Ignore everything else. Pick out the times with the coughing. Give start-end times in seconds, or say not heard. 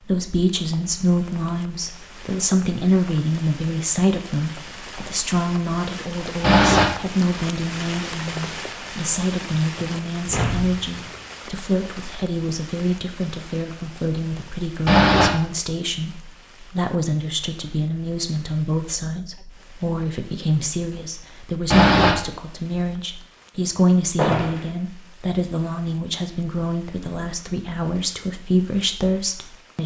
6.4-6.8, 14.8-15.3, 21.7-22.1.